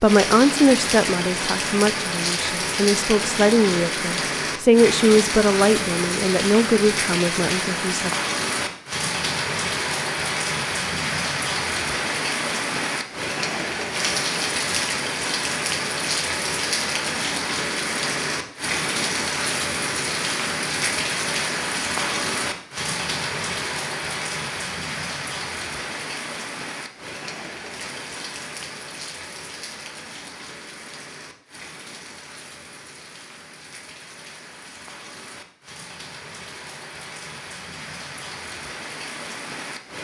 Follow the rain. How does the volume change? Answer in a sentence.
The loudness of the rain goes down.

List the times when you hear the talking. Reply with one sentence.
The talking can be heard from 0.0 to 8.1 s.